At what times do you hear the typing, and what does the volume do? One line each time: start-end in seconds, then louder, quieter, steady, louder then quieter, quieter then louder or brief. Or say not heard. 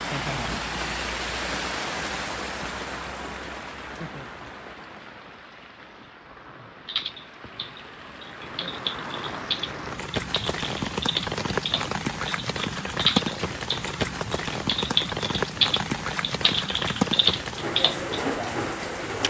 6.8-18.2 louder.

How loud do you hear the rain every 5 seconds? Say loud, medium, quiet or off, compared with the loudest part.
loud, medium, loud, loud.